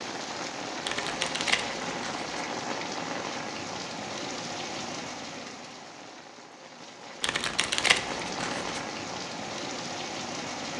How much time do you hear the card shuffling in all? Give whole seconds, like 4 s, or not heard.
3 s.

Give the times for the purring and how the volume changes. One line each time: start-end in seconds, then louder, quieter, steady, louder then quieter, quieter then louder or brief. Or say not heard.
not heard.